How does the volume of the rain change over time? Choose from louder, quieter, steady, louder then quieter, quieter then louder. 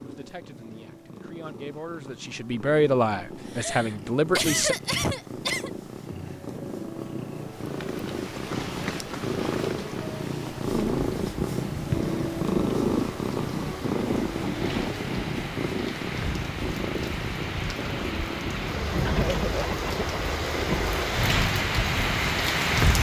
louder.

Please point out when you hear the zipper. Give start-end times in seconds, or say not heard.
not heard.